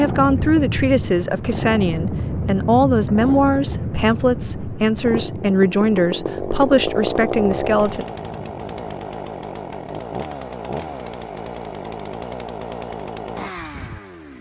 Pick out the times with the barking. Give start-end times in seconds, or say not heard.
not heard.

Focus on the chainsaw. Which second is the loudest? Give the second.
7 s.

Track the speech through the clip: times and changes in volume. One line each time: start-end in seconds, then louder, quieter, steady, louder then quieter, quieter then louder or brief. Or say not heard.
0.0-8.1 steady.